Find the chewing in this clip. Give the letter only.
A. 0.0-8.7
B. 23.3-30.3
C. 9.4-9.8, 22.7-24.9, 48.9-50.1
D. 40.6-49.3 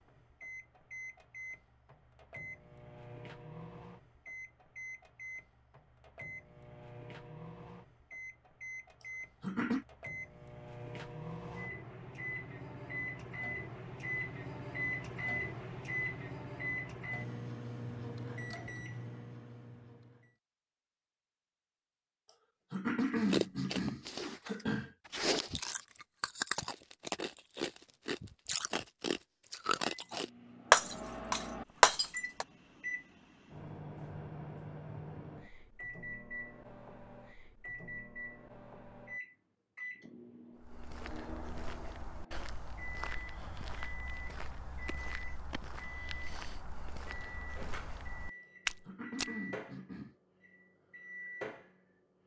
B.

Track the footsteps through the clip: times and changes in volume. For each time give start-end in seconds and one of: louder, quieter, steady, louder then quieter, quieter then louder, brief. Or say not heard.
40.6-49.3 louder.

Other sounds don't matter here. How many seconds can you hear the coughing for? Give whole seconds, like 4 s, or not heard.
4 s.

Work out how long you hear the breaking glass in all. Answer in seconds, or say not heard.
2 s.